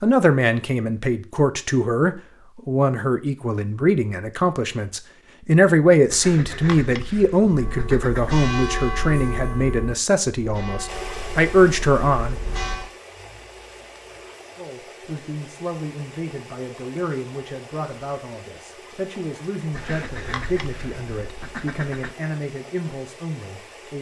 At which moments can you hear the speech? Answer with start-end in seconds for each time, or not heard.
0.0-12.3, 14.6-23.9.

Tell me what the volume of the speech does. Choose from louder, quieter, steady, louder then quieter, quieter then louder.
quieter.